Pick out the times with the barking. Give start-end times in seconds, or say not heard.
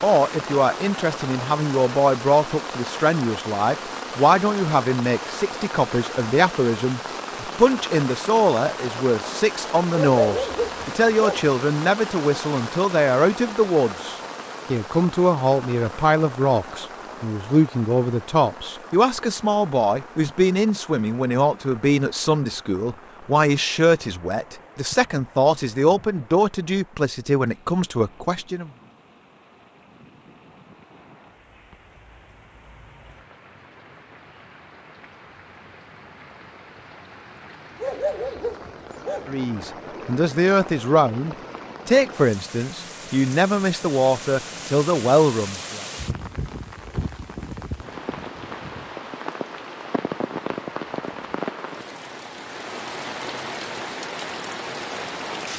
9.9-11.5, 37.8-39.4.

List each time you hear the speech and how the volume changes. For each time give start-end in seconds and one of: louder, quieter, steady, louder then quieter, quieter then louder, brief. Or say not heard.
0.0-28.7 steady
39.2-45.9 steady.